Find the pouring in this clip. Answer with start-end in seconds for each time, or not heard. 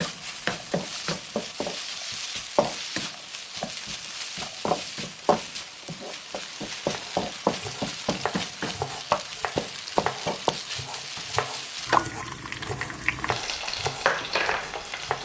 not heard.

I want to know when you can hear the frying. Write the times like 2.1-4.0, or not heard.
0.0-15.2.